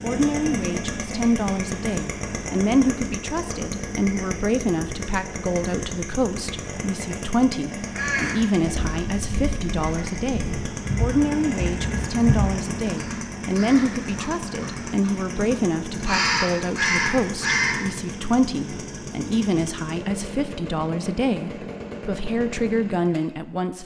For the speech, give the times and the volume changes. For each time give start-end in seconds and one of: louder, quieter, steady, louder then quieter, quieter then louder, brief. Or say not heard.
0.0-23.8 steady.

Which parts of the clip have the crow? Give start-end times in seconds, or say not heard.
7.8-15.2, 16.0-17.8.